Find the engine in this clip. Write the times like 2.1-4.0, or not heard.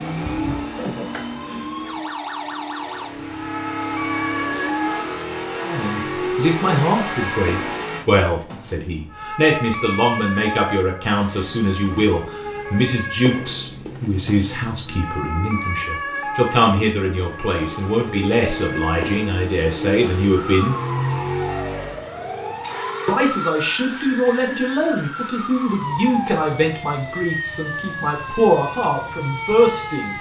0.0-8.1, 11.1-30.1.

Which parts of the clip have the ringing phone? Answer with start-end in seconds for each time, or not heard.
22.1-23.1.